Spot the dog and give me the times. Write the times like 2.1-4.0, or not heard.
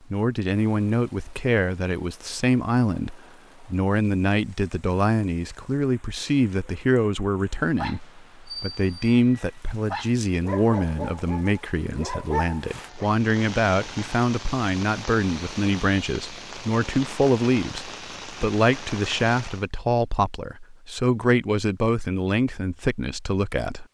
7.8-13.1.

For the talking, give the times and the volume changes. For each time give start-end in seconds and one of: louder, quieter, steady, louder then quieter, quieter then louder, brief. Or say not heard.
0.1-23.8 steady.